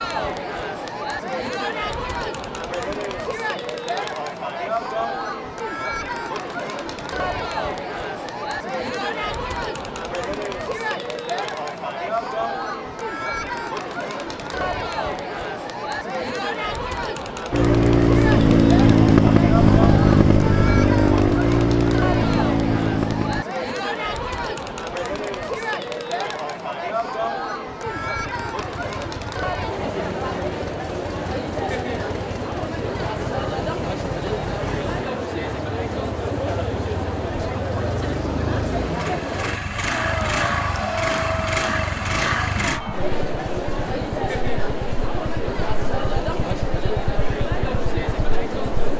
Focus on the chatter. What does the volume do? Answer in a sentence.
The volume of the chatter stays about the same.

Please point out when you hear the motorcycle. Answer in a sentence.
The motorcycle can be heard from 17.5 to 23.4 s and from 27.9 to 48.9 s.